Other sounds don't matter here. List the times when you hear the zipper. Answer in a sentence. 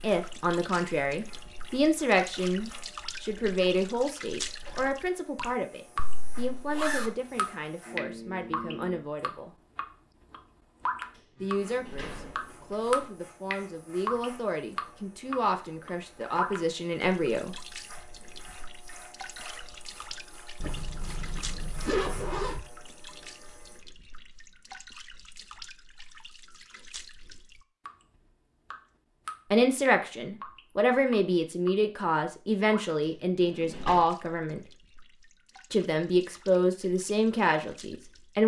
You can hear the zipper from 6.0 to 7.1 s and from 20.6 to 22.6 s.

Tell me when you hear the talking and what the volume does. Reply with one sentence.
The talking can be heard from 0.0 to 9.6 s, getting quieter; from 11.4 to 17.6 s, getting louder; from 29.5 to 34.6 s, at a steady volume; and briefly from 35.7 to 38.4 s.